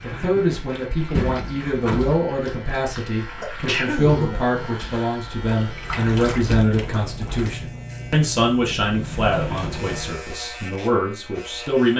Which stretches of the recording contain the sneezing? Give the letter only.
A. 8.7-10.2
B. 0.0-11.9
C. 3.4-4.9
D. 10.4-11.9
C.